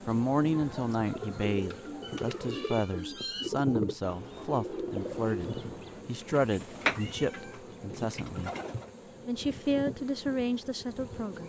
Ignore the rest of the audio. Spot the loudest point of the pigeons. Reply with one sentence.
The loudest moment of the pigeons is at 7 seconds.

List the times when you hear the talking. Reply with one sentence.
The talking can be heard from 0.1 to 8.5 s and from 9.2 to 11.4 s.